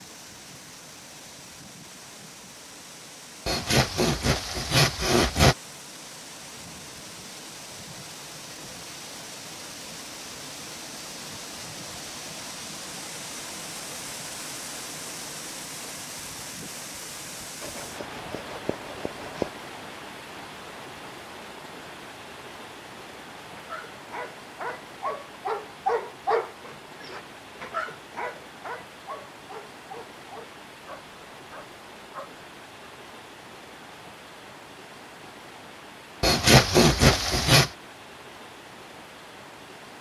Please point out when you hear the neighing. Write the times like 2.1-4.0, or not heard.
not heard.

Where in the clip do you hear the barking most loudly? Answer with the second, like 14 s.
26 s.